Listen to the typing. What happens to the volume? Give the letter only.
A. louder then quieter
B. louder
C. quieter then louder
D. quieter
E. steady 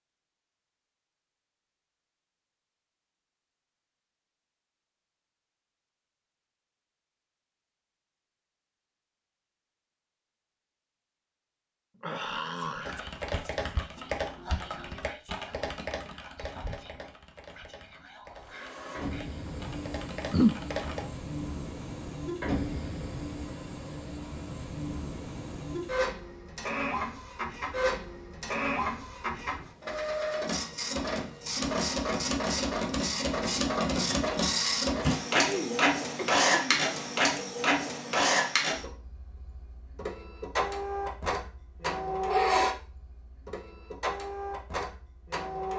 C.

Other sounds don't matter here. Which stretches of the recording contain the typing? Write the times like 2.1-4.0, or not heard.
12.8-21.1.